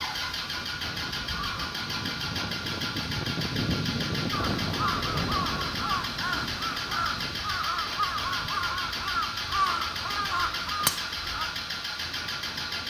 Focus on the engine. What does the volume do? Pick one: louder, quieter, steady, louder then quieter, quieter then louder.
steady.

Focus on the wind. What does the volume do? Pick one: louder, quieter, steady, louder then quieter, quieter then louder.
louder then quieter.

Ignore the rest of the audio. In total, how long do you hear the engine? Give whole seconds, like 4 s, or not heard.
13 s.